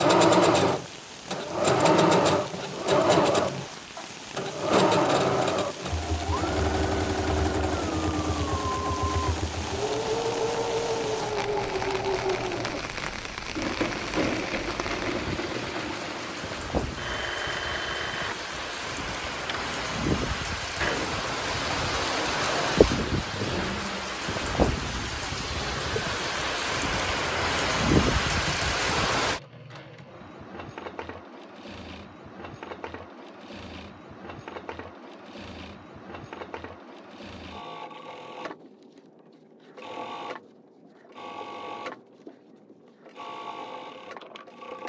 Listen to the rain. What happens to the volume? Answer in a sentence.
The volume of the rain goes up.